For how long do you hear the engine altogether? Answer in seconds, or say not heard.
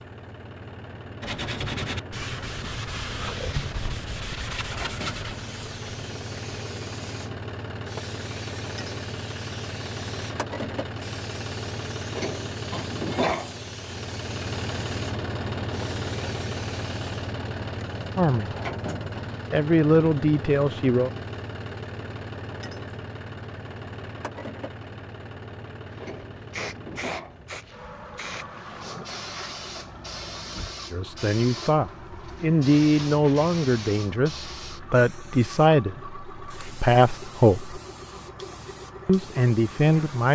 40 s.